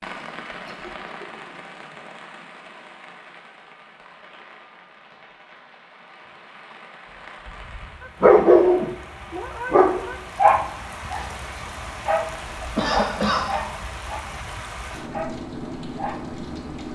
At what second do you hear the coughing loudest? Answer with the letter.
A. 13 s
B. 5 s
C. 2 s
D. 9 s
A.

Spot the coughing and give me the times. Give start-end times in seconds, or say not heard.
0.7-1.6, 12.8-13.4.